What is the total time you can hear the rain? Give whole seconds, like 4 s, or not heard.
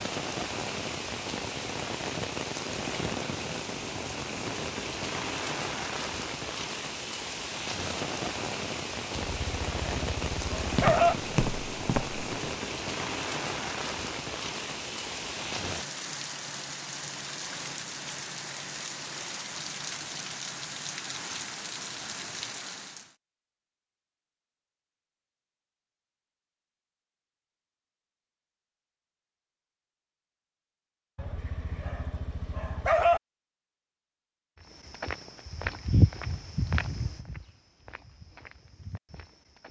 23 s.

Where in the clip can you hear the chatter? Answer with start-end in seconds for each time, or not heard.
not heard.